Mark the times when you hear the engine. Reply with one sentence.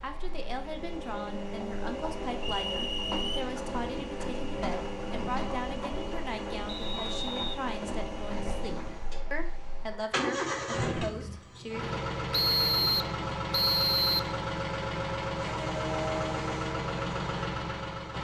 The engine can be heard from 0.0 to 18.1 s.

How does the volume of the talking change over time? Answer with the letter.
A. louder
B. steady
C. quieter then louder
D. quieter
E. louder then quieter
B.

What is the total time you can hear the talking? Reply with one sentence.
You can hear the talking for 12 seconds altogether.